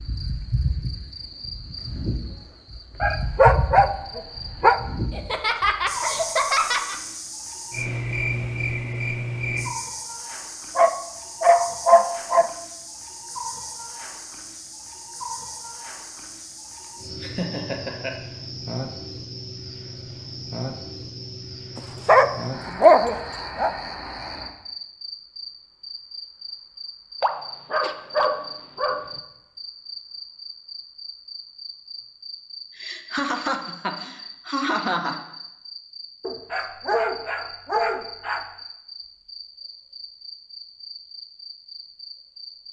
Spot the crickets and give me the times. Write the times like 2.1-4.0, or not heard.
0.0-42.6.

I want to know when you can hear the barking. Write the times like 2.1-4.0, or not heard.
3.0-4.8, 10.8-12.5, 21.8-23.7, 27.2-29.2, 36.2-38.5.